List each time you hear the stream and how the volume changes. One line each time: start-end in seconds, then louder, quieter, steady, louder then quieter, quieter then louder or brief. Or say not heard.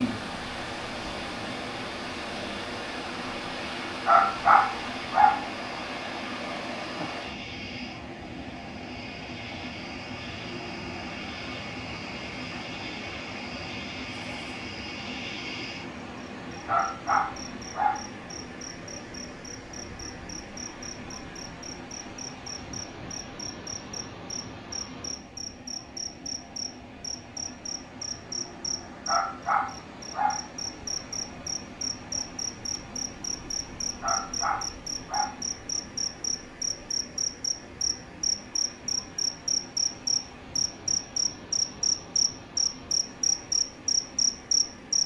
0.0-45.0 quieter.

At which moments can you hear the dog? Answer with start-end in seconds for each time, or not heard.
4.0-5.4, 16.6-18.1, 29.1-30.4, 34.0-35.4.